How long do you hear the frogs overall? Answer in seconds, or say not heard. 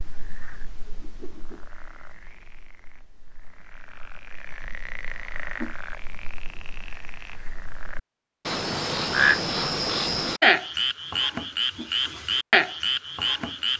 14 s.